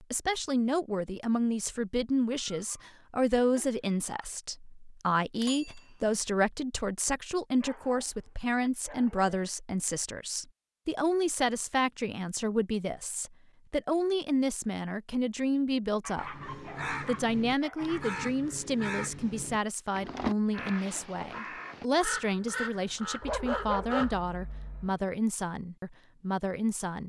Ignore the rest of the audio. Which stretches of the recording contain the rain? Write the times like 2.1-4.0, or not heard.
not heard.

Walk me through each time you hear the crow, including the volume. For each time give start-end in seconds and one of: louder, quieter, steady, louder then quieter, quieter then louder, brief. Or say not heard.
16.1-24.2 steady.